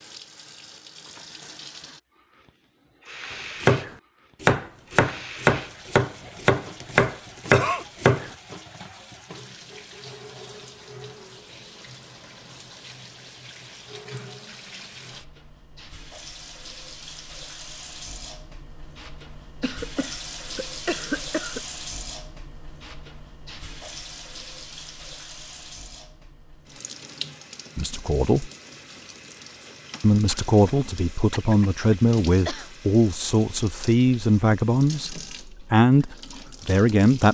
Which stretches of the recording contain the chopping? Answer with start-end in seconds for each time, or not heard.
3.6-8.3.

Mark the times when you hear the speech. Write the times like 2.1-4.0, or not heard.
27.8-28.5, 30.0-37.3.